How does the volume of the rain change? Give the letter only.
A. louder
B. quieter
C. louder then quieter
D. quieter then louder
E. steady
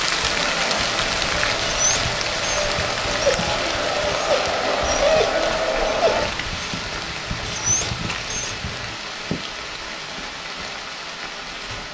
B.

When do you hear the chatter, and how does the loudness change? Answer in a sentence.
You can hear the chatter from 0.2 to 6.2 s, getting louder.